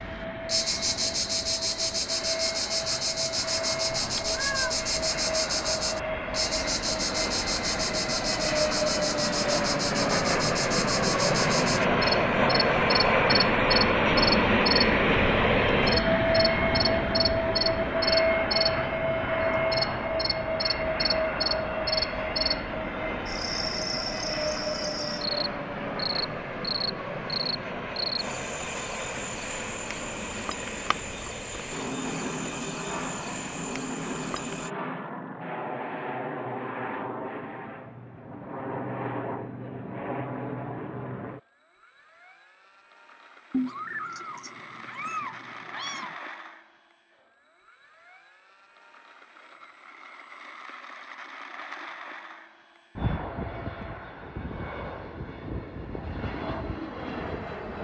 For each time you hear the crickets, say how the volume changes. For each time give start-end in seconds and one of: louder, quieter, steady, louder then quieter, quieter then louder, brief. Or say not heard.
0.0-34.7 quieter.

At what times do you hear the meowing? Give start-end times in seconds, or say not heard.
4.1-4.9, 43.5-46.1.